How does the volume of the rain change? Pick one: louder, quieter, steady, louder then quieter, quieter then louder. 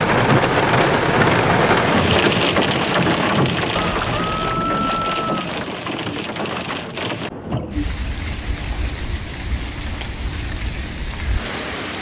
quieter.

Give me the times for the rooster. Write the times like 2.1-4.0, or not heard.
3.8-5.4.